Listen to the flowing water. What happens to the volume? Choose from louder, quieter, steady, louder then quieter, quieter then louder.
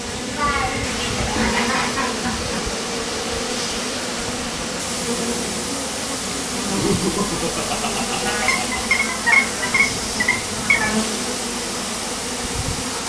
steady.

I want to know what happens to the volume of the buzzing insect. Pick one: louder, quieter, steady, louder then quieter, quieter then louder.
steady.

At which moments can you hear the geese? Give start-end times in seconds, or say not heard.
0.5-2.1, 8.2-11.0.